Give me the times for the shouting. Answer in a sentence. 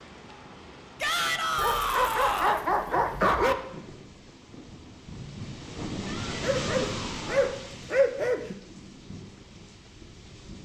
The shouting can be heard from 1.0 to 2.6 s and from 6.0 to 7.7 s.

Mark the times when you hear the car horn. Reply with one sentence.
You can't hear the car horn here.